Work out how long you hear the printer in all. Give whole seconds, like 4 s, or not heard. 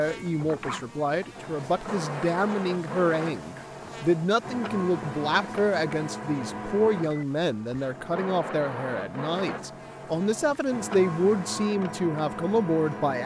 13 s.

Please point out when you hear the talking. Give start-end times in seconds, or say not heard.
0.0-13.2.